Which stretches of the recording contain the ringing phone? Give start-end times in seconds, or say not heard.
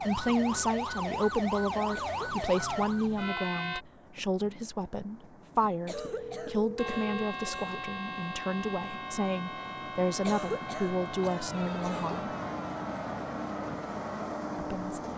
2.6-3.2, 5.9-7.3, 11.5-12.2.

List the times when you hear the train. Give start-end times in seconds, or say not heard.
0.0-15.1.